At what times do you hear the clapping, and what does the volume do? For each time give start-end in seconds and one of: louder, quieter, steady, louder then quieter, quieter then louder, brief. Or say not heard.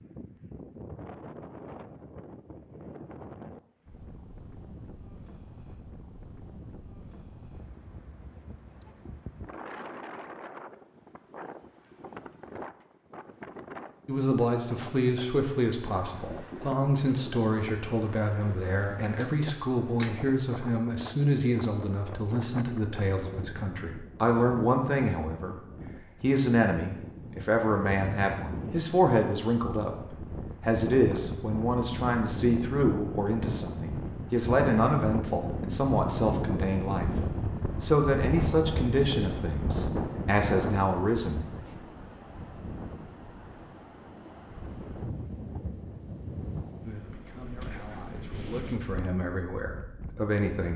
not heard.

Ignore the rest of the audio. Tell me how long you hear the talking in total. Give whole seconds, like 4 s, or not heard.
30 s.